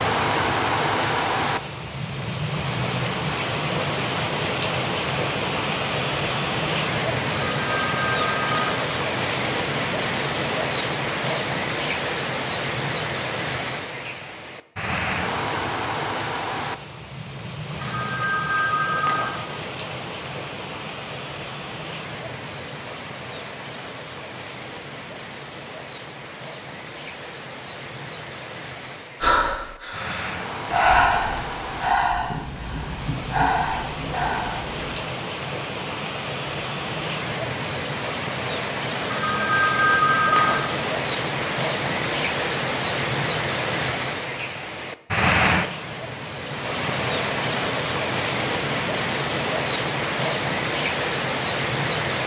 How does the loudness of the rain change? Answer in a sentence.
The volume of the rain goes down, then up.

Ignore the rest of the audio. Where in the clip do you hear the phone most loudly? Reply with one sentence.
The volume of the phone peaks at 40 seconds.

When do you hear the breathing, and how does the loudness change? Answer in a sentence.
You can hear the breathing from 29.2 to 35.0 s, getting louder then quieter.